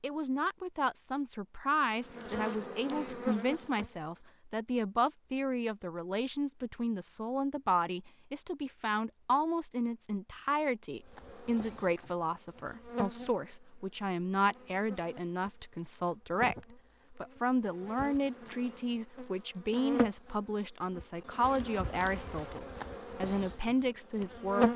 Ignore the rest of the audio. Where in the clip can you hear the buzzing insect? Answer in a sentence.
You can hear the buzzing insect from 2.1 to 3.9 s and from 11.1 to 24.7 s.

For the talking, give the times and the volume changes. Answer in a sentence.
You can hear the talking from 0.0 to 24.7 s, at a steady volume.